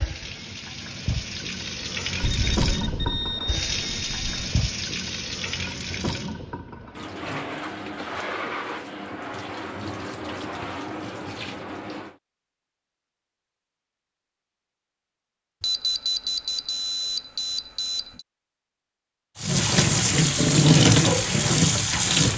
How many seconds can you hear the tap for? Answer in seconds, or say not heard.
15 s.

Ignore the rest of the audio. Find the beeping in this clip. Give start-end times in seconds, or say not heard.
2.2-4.3, 15.6-18.2.